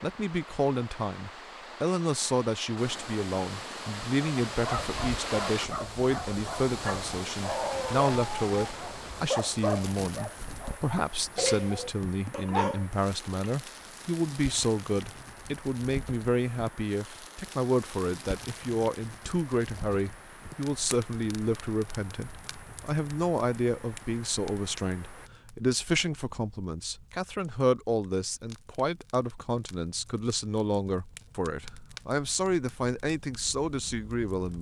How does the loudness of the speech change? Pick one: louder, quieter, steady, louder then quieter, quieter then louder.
steady.